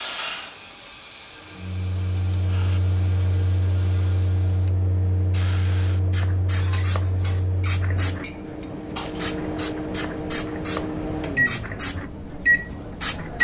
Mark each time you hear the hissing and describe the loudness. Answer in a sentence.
The hissing can be heard from 0.0 to 13.3 s, getting louder.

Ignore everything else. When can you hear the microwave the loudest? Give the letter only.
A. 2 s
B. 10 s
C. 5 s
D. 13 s
D.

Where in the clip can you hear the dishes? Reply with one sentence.
You can hear the dishes from 6.2 to 9.3 s.